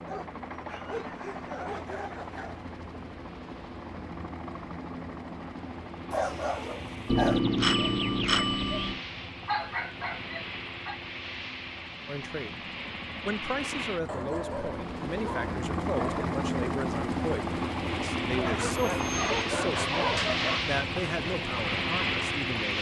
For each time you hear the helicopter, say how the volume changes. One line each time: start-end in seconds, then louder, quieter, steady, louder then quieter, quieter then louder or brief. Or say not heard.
0.0-22.7 louder.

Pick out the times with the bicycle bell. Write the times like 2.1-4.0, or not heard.
7.1-8.9, 18.8-19.4.